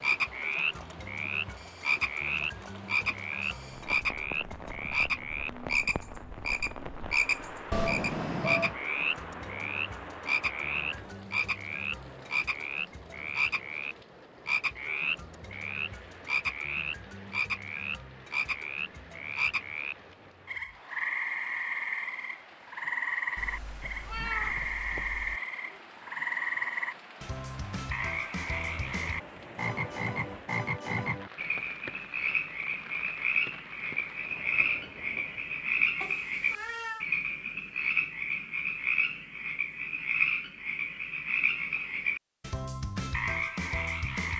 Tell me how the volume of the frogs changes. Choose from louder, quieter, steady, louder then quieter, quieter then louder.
steady.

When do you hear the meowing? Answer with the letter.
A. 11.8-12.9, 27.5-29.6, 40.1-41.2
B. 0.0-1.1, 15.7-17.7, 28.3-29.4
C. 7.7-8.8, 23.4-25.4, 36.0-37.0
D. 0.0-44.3
C.